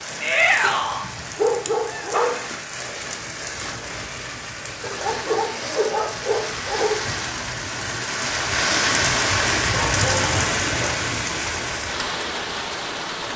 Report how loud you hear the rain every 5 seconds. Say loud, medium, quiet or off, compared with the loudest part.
medium, loud, loud.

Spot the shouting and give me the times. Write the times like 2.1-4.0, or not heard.
0.2-1.1.